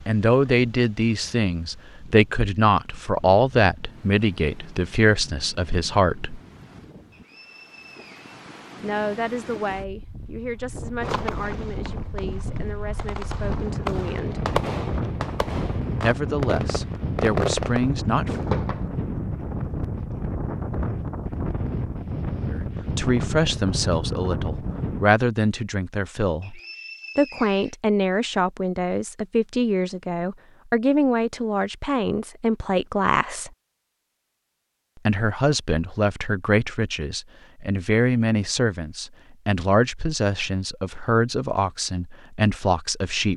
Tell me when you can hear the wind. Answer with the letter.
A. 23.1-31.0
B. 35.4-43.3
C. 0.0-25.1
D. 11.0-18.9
C.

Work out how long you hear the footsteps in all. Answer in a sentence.
The footsteps can't be heard in this clip.